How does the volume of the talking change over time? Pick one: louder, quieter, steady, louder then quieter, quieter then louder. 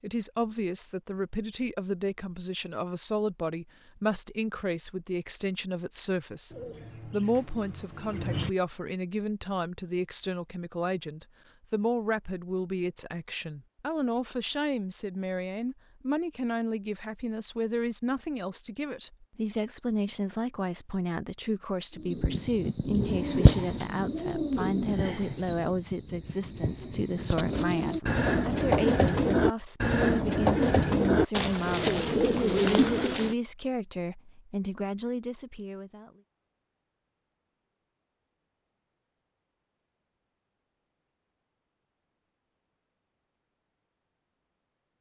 steady.